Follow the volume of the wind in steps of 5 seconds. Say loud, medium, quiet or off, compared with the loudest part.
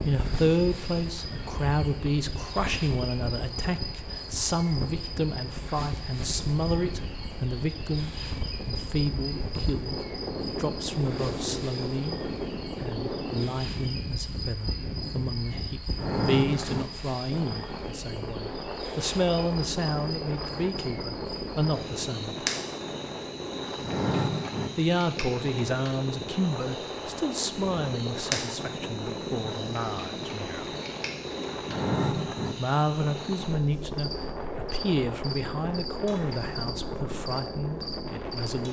medium, medium, loud, loud, loud, loud, loud, loud.